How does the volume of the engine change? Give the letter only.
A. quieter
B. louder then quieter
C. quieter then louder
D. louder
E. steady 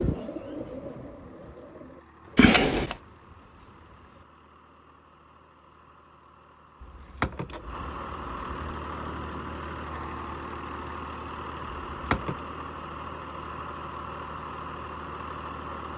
D.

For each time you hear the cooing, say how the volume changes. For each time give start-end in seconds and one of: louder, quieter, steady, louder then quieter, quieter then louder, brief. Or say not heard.
0.0-4.2 quieter.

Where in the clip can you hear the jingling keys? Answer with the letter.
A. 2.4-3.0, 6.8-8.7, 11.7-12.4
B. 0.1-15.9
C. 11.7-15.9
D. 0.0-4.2
A.